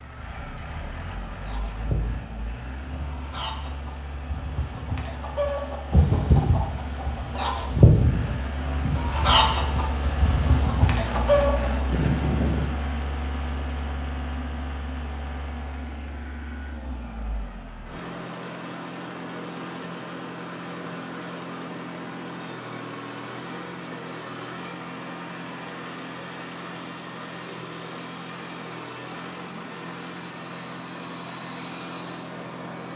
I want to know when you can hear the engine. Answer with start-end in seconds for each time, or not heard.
0.0-32.9.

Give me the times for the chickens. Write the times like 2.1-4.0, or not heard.
1.3-12.7.